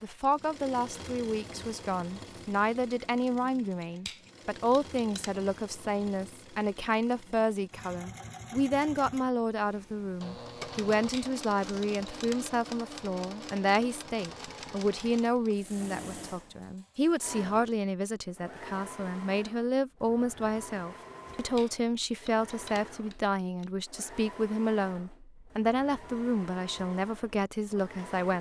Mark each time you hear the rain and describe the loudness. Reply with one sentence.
The rain can't be heard in this clip.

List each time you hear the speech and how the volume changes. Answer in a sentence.
The speech can be heard from 0.0 to 28.3 s, at a steady volume.